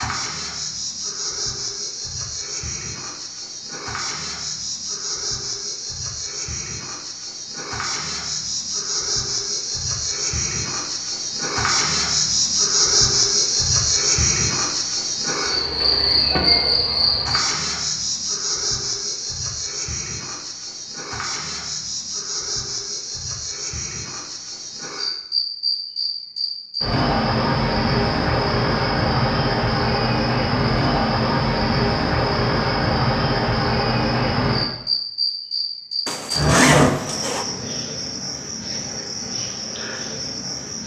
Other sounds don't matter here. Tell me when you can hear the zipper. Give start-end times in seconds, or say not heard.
36.0-37.5.